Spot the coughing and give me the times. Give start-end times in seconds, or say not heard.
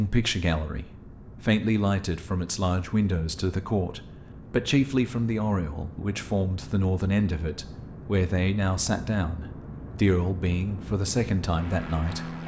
not heard.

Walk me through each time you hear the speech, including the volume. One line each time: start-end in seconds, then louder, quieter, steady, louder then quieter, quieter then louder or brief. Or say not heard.
0.0-12.4 steady.